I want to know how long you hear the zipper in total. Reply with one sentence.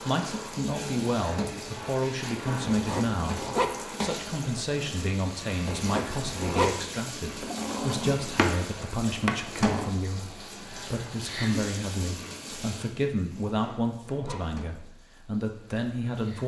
The zipper can be heard for 3 seconds in total.